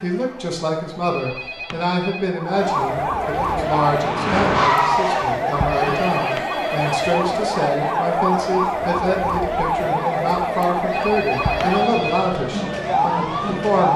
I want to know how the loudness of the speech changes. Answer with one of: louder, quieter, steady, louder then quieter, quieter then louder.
steady.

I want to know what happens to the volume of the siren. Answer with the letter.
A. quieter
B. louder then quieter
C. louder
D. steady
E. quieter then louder
C.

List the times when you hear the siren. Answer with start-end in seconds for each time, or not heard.
0.0-13.9.